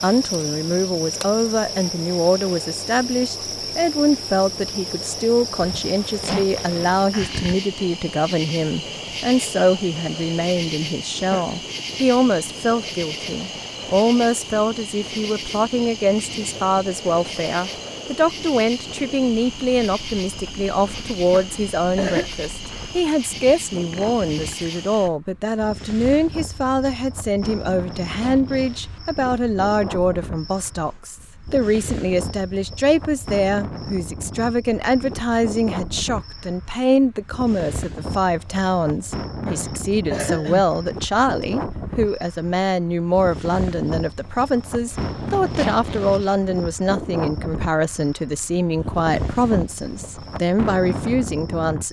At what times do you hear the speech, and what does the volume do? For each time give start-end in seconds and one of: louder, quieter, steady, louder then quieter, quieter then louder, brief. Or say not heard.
0.0-51.8 steady.